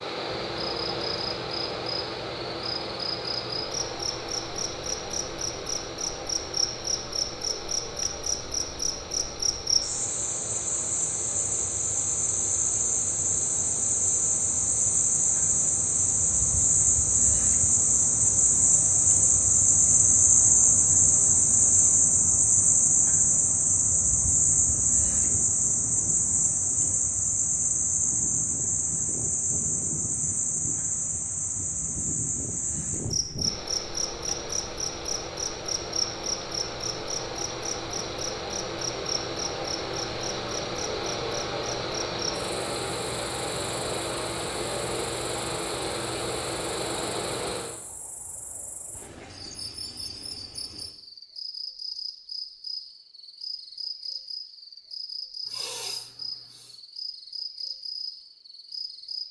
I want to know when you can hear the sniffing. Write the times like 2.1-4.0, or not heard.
55.5-56.8.